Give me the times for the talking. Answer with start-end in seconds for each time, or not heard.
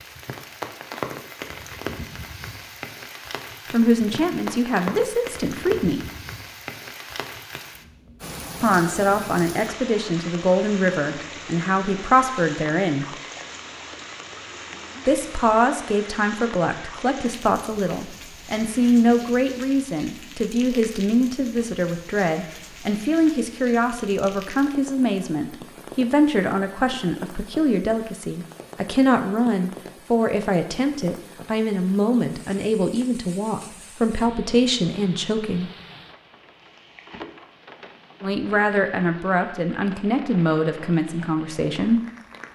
3.7-6.0, 8.6-13.2, 15.1-35.7, 38.2-42.0.